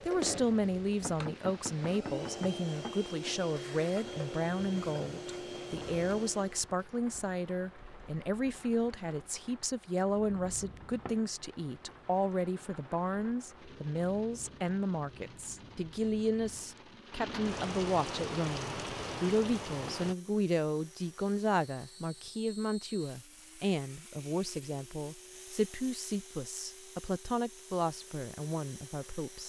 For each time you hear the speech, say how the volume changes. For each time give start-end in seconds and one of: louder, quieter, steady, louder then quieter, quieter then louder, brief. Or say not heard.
0.1-29.4 steady.